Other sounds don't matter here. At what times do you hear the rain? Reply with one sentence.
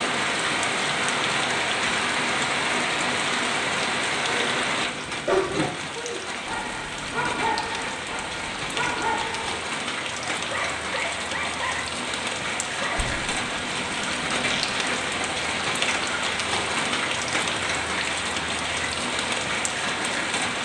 The rain can be heard from 0.0 to 20.6 s.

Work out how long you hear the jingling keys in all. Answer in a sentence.
The jingling keys can be heard for 3 seconds in total.